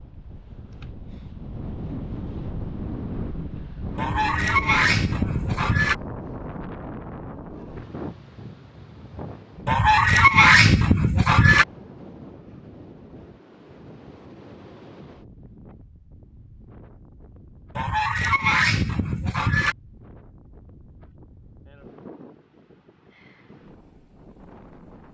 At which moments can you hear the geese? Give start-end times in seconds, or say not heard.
4.0-6.0, 9.7-11.7, 17.8-19.8.